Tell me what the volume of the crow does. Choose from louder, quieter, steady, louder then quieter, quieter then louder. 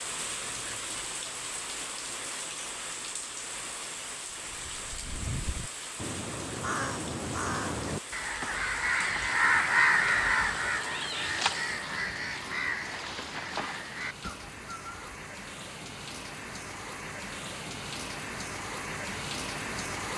louder then quieter.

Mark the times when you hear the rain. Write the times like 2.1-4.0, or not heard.
0.0-20.1.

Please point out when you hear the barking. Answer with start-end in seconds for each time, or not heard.
not heard.